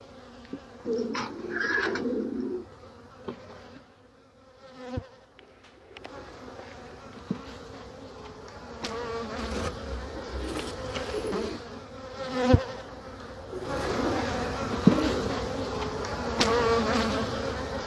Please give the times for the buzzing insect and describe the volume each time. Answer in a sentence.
The buzzing insect can be heard from 0.0 to 17.8 s, getting louder.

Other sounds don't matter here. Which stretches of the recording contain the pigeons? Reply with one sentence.
The pigeons can be heard from 0.8 to 2.6 s, from 5.3 to 7.2 s, from 9.3 to 11.6 s and from 13.5 to 15.4 s.